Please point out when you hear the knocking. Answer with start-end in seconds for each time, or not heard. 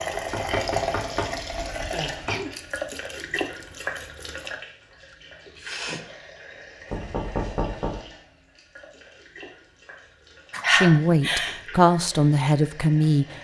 0.1-2.4, 6.9-8.0.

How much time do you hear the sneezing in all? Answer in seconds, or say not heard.
3 s.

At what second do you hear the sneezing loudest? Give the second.
11 s.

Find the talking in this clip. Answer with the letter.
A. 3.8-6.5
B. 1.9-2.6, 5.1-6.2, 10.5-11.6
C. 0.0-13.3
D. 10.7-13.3
D.